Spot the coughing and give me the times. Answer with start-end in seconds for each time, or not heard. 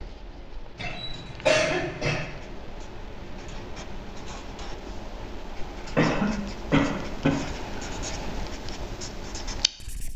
0.8-2.2, 6.0-7.8.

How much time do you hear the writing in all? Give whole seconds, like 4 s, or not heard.
10 s.